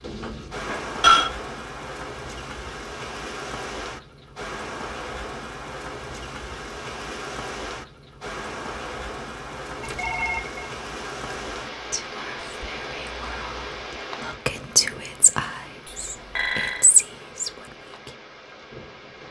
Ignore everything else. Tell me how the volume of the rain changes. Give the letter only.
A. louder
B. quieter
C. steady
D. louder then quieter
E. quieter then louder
B.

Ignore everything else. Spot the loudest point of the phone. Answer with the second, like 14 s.
1 s.